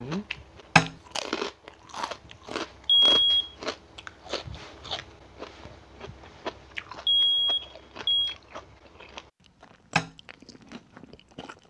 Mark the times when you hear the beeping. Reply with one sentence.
You can hear the beeping from 2.9 to 3.5 s and from 7.0 to 8.3 s.